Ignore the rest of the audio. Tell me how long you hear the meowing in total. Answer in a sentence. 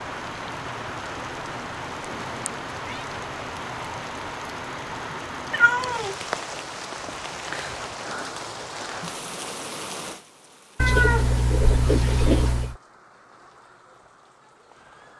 The meowing can be heard for 4 seconds in total.